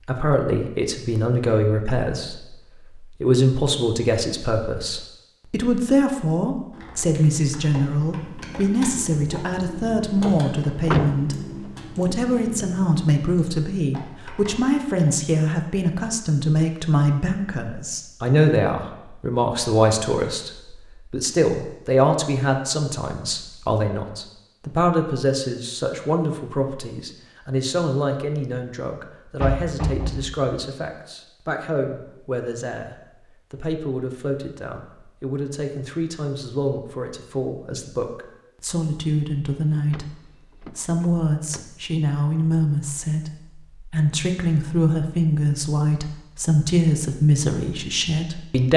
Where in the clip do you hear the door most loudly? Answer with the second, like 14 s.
11 s.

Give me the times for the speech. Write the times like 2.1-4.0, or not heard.
0.1-48.7.